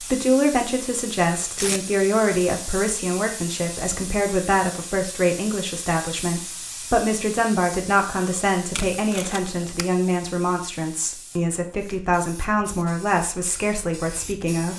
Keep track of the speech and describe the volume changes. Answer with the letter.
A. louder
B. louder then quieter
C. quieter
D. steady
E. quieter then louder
D.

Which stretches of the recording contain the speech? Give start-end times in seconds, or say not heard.
0.0-14.7.